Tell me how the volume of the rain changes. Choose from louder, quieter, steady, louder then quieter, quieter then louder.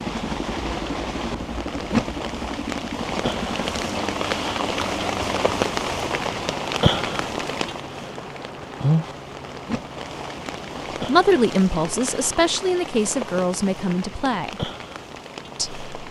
quieter.